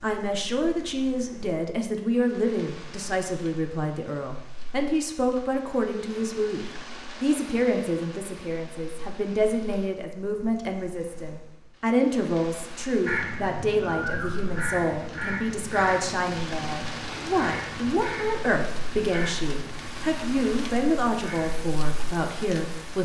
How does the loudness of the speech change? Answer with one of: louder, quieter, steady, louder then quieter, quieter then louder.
steady.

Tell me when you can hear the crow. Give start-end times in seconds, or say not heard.
13.1-21.6.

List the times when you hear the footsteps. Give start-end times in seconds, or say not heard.
not heard.